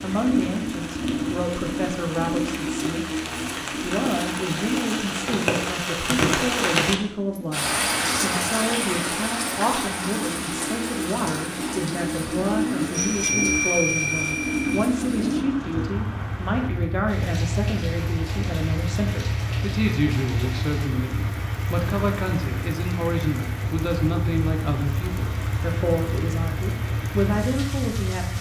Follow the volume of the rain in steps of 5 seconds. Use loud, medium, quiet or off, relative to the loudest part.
medium, loud, medium, quiet, quiet, quiet.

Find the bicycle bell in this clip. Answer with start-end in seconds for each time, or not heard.
12.9-14.8.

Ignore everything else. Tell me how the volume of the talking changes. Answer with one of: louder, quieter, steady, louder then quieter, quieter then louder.
steady.